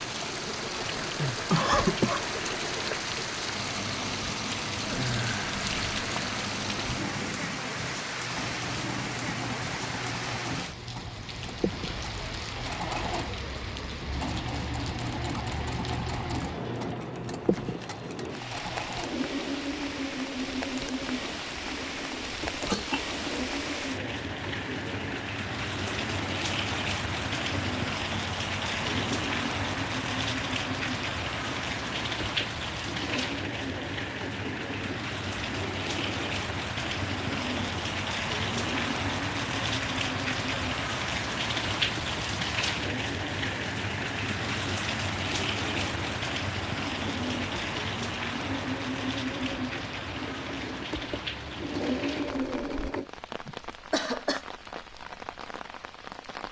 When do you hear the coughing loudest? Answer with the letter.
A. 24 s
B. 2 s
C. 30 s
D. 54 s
B.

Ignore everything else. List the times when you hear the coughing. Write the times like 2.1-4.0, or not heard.
1.5-2.2, 22.6-23.1, 53.5-54.5.